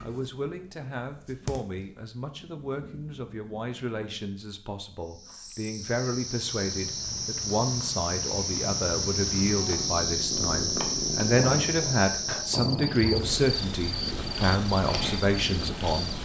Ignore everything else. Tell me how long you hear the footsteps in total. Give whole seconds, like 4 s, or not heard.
not heard.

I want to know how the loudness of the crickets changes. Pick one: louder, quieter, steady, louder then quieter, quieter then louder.
louder then quieter.